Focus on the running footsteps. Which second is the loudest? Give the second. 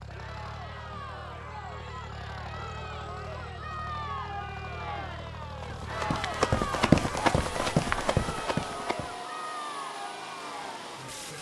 7 s.